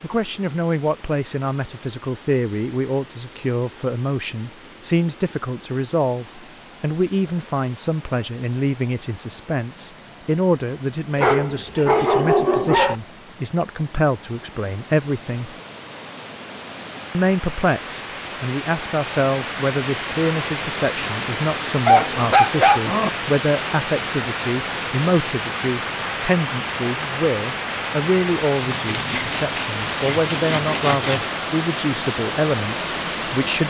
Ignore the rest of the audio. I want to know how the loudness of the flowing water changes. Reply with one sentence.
The volume of the flowing water goes up.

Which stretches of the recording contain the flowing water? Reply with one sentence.
The flowing water can be heard from 0.0 to 33.6 s.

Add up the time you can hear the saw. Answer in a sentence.
You can hear the saw for 3 seconds altogether.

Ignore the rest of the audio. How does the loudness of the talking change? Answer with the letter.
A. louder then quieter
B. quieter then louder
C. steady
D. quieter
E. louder
C.